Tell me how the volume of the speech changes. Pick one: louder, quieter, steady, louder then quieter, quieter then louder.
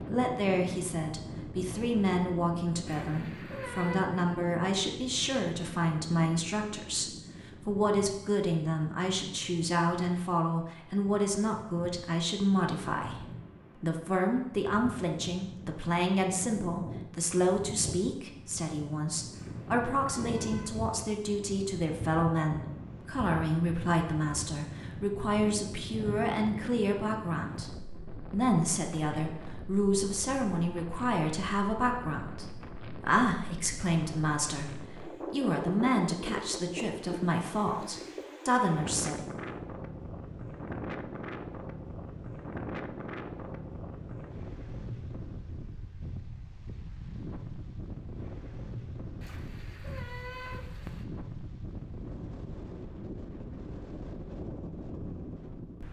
steady.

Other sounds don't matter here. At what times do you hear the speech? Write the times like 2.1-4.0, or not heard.
0.0-39.2.